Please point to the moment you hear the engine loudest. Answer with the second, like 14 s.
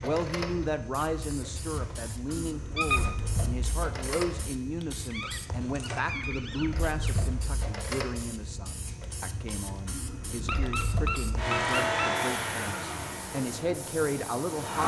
12 s.